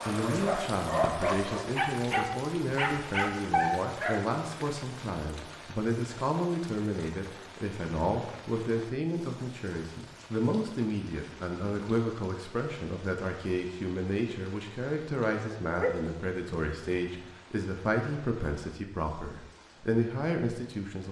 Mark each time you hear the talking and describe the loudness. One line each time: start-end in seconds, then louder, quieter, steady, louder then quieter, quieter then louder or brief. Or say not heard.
0.1-21.0 steady.